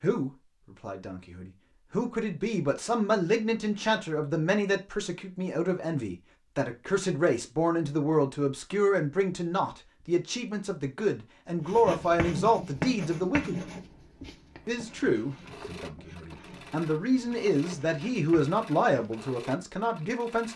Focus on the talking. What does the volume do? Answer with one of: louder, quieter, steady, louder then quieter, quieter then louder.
steady.